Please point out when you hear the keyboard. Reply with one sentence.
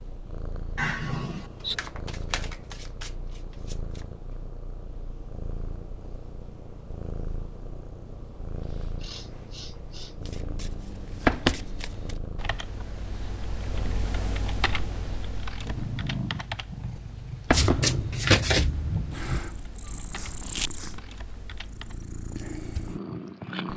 You can hear the keyboard from 10.8 to 21.9 s.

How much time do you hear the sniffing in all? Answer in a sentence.
The sniffing can be heard for 3 seconds in total.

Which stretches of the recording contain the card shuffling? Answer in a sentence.
The card shuffling can be heard from 1.6 to 4.0 s, from 10.2 to 12.2 s and from 17.5 to 19.4 s.